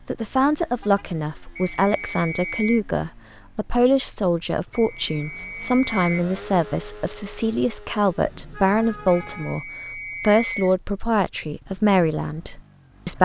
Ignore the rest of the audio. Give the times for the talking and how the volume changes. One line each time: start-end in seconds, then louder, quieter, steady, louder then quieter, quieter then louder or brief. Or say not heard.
0.1-13.1 steady.